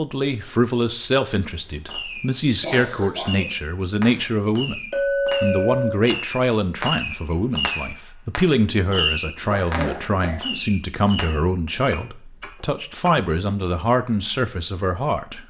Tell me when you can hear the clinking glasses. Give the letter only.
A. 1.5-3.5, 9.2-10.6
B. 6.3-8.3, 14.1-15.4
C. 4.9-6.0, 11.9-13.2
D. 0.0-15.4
C.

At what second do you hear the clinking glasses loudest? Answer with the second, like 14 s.
5 s.